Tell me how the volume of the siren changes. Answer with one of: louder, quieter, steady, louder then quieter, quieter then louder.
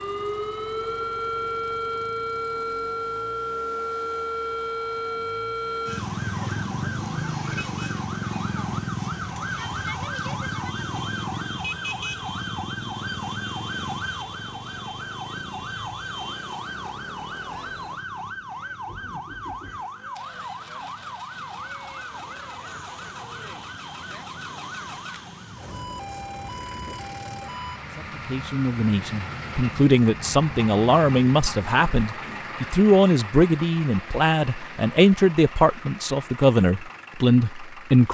quieter.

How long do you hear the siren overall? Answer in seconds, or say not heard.
28 s.